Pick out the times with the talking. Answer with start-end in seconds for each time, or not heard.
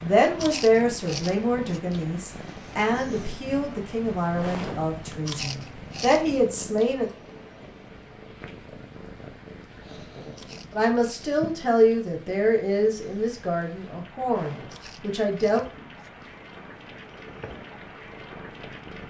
0.0-7.1, 10.7-15.7.